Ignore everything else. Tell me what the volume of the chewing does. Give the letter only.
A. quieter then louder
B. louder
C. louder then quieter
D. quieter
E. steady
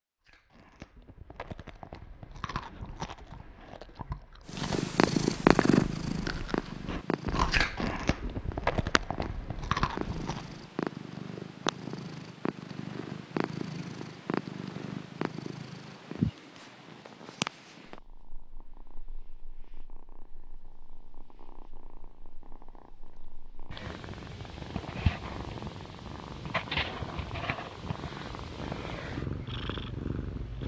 B.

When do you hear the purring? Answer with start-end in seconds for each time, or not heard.
4.5-30.6.